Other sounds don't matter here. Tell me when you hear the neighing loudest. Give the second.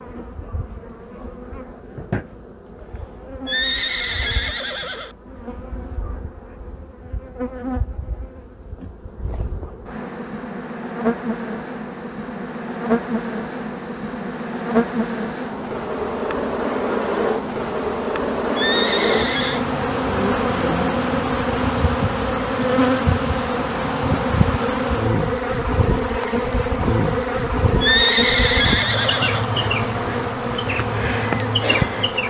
28 s.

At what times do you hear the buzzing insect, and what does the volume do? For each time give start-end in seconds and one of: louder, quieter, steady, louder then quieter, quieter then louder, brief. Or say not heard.
0.0-32.2 louder.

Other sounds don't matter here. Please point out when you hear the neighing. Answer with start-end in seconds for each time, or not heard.
3.5-5.2, 18.6-19.6, 27.8-29.4.